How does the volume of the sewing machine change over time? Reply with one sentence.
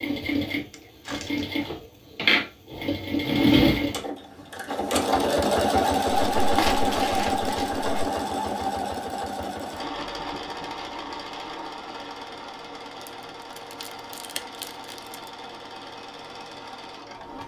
The volume of the sewing machine goes down.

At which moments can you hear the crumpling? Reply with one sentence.
You can hear the crumpling from 0.7 to 1.7 s, from 6.1 to 7.8 s and from 13.1 to 15.2 s.